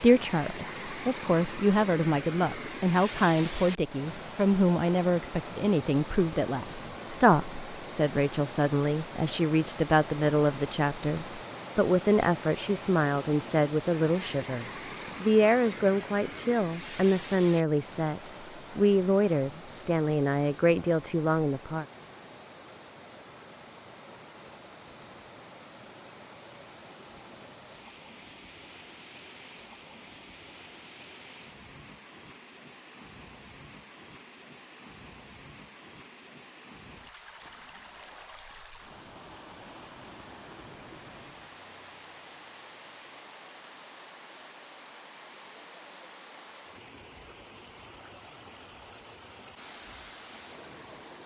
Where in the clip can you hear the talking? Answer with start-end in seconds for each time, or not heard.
0.0-21.9.